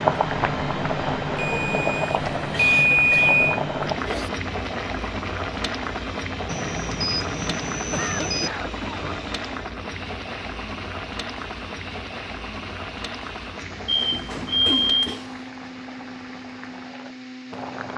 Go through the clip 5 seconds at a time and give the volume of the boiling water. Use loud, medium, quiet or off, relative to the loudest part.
loud, medium, medium, quiet.